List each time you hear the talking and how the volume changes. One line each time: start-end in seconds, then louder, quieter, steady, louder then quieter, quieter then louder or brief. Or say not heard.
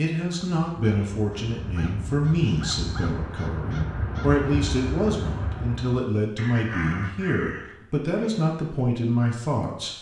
0.0-9.9 steady.